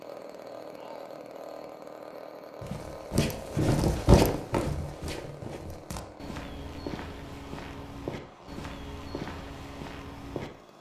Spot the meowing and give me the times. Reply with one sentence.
The meowing can't be heard in this clip.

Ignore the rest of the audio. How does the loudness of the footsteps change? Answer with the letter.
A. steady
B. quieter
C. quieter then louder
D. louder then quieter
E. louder
B.